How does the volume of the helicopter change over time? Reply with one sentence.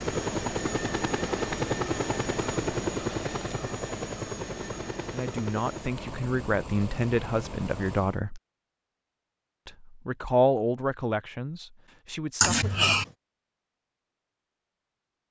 The volume of the helicopter goes down.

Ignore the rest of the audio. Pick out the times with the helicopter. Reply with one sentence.
The helicopter can be heard from 0.0 to 8.2 s.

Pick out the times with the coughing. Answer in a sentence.
The coughing can be heard from 12.4 to 13.1 s.